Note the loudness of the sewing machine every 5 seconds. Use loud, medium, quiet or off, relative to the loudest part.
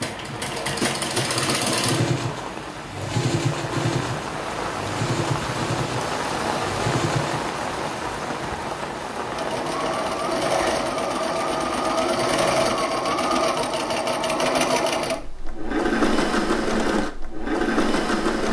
loud, medium, loud, loud.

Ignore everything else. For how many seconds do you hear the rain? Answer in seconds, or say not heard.
12 s.